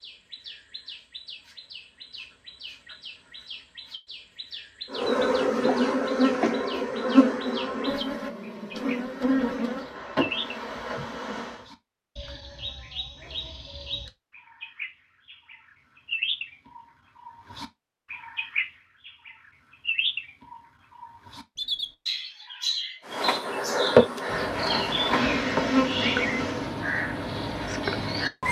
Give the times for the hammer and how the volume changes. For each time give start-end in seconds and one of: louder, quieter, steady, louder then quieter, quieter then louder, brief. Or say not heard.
not heard.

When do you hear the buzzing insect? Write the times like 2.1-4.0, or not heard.
4.9-11.7, 23.1-26.8.